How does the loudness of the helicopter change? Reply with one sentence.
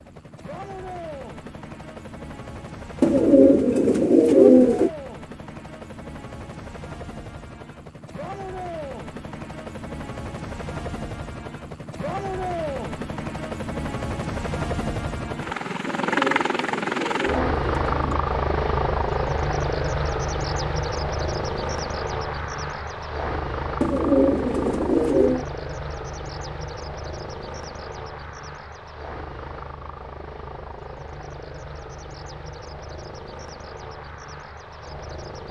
The volume of the helicopter goes up, then down.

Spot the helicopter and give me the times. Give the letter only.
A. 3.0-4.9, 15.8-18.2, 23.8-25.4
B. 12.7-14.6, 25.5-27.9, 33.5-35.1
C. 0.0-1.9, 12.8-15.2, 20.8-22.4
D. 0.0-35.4
D.